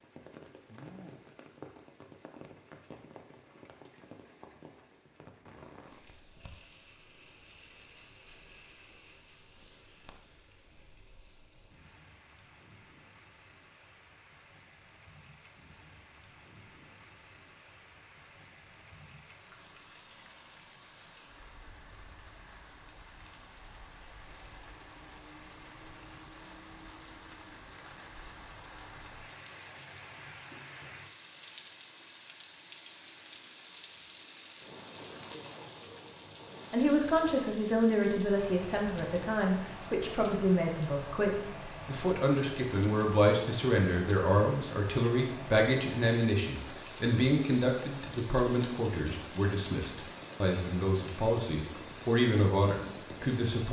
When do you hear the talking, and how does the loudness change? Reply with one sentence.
The talking can be heard from 36.7 to 53.6 s, at a steady volume.